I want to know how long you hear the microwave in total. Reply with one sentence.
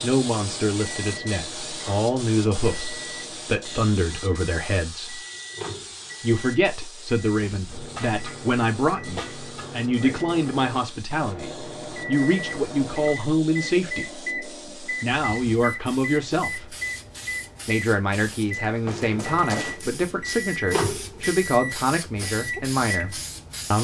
You can hear the microwave for 24 seconds altogether.